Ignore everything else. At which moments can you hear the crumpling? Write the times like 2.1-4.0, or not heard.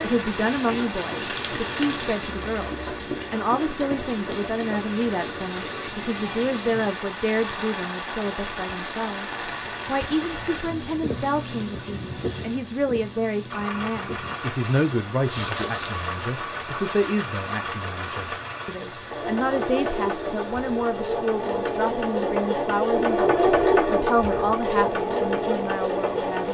0.5-2.4, 15.3-16.1.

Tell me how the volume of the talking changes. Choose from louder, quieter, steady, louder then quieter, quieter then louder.
steady.